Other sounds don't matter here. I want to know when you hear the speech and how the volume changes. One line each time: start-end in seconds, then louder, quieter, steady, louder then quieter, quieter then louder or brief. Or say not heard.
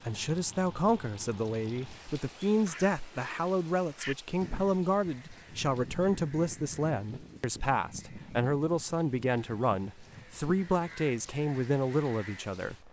0.1-12.8 steady.